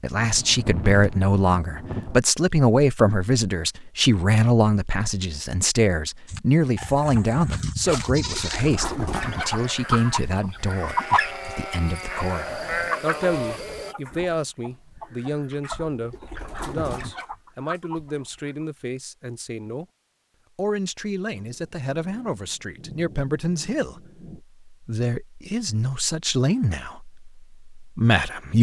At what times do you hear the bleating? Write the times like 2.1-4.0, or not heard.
6.2-13.9.